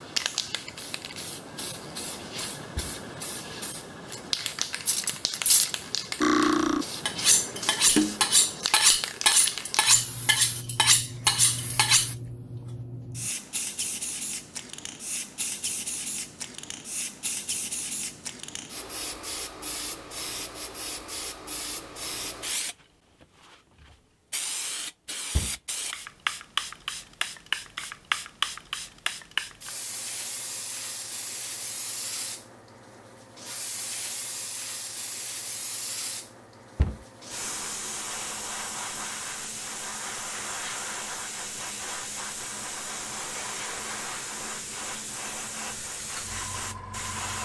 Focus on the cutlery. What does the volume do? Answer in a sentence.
The loudness of the cutlery stays about the same.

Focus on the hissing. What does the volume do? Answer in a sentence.
The loudness of the hissing stays about the same.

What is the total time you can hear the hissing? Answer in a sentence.
You can hear the hissing for 47 seconds altogether.